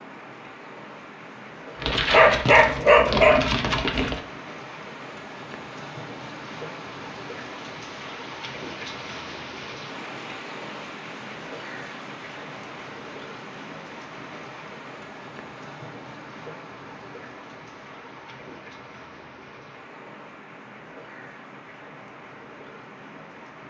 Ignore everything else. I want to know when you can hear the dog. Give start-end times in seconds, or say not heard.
1.8-4.2.